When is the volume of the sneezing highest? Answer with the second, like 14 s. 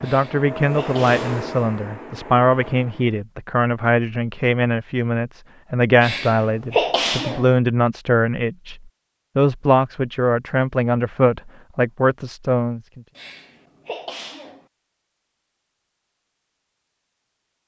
7 s.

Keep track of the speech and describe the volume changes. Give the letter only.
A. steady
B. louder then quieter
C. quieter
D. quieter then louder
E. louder
A.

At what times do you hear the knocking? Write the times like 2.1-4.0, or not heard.
not heard.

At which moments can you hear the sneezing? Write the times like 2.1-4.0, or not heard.
0.0-1.3, 6.0-7.5, 13.2-14.7.